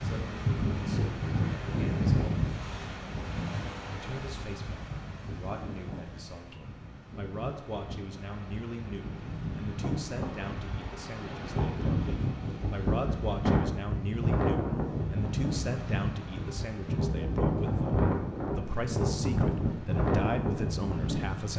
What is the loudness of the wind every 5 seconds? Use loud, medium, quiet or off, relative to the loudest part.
loud, medium, loud, loud, loud.